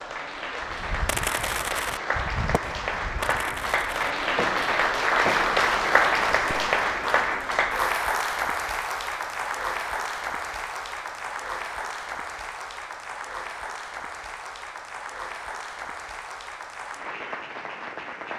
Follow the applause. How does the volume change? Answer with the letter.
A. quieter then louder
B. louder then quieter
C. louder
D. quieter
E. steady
B.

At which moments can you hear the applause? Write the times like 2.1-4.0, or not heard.
0.0-18.3.